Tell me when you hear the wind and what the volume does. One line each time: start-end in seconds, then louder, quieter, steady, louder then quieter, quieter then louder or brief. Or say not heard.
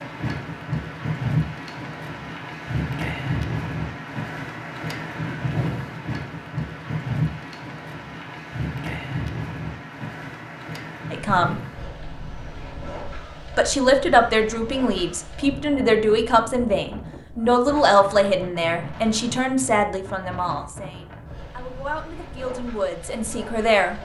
0.0-24.0 quieter.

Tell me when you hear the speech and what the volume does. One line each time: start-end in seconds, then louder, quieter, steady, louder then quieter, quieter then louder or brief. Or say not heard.
11.1-11.6 brief
13.6-23.9 quieter.